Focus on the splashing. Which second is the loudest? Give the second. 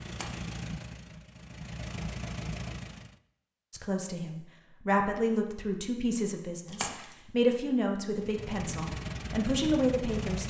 7 s.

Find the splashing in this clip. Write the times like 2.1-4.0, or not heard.
0.1-0.5, 6.7-7.3.